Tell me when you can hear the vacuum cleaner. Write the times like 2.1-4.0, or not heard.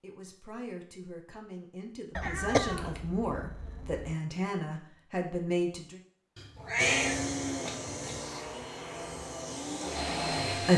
6.8-10.7.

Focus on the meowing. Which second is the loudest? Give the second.
7 s.